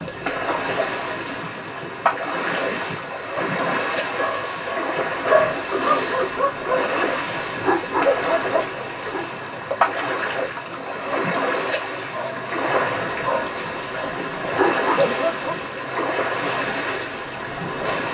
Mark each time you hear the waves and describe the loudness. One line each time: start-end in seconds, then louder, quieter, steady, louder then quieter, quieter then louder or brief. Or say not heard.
0.0-18.0 steady.